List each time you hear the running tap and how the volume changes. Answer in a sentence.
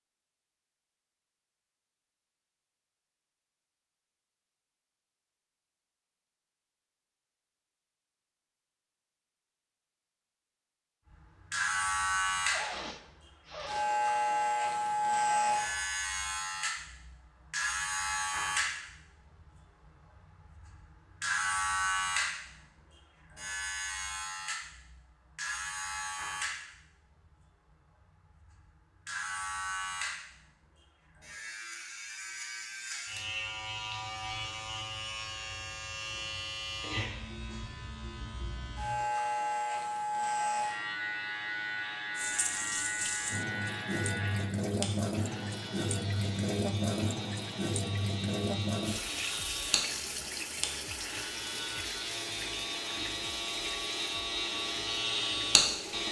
The running tap can be heard from 42.1 to 56.0 s, getting quieter.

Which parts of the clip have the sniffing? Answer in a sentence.
You can hear the sniffing from 12.4 to 13.9 s.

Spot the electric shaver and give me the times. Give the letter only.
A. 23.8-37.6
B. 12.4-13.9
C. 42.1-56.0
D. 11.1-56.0
D.